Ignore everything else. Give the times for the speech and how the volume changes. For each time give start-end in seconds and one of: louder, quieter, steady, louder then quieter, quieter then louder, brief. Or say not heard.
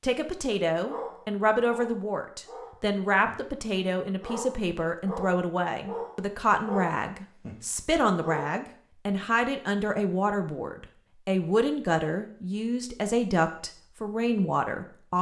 0.0-15.1 steady.